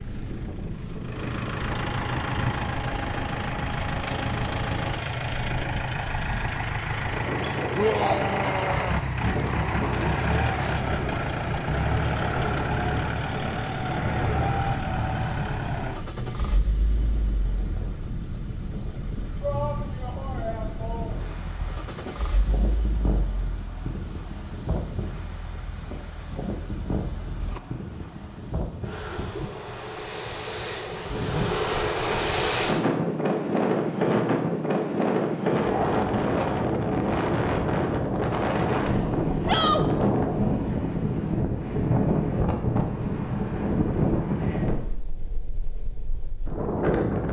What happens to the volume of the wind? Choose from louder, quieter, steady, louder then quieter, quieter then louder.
louder.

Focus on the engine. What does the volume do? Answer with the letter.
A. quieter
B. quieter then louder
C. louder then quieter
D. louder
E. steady
A.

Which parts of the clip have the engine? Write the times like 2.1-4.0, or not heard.
0.0-27.6.